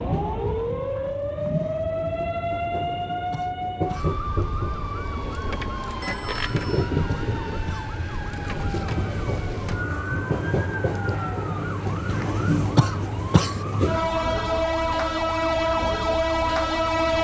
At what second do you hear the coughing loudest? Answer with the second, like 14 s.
13 s.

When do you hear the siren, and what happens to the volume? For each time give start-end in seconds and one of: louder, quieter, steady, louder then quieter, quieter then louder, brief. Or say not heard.
0.0-16.9 quieter.